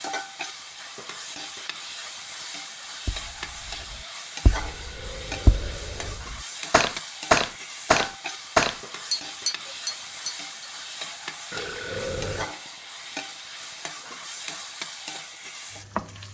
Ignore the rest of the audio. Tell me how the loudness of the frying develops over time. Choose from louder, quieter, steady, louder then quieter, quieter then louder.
steady.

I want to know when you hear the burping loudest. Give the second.
12 s.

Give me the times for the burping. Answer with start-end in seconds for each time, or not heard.
4.5-6.2, 11.5-12.6.